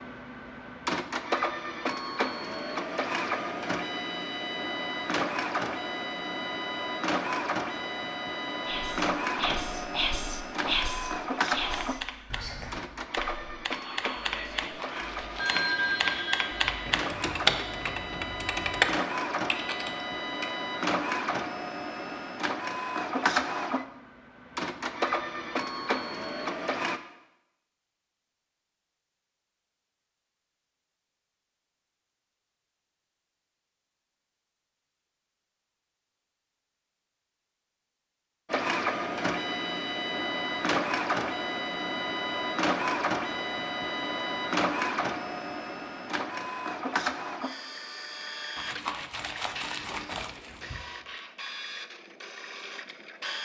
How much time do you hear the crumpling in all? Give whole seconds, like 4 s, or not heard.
5 s.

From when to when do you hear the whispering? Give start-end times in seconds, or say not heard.
8.7-15.6.